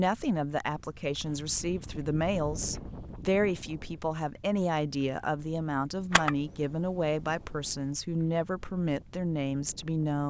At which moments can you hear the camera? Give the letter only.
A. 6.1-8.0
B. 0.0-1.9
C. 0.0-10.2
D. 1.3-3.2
A.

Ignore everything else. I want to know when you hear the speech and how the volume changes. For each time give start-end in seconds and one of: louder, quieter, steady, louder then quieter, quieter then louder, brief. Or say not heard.
0.0-10.2 steady.